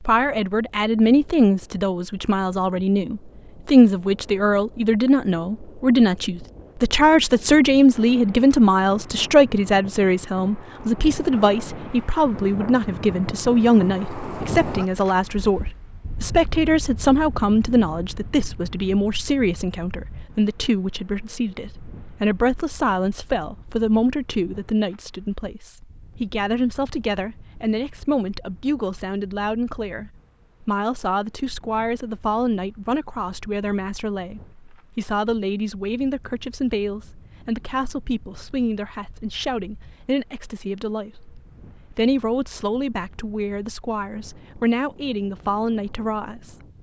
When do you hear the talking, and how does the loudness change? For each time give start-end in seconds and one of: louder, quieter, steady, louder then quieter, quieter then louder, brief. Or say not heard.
0.0-46.6 quieter.